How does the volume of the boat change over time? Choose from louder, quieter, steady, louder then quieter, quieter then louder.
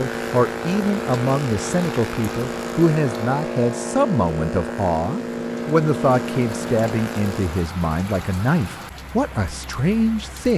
steady.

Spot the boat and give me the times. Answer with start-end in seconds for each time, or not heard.
0.0-7.7.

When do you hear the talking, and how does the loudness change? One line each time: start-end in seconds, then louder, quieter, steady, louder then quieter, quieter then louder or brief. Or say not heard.
0.0-10.5 steady.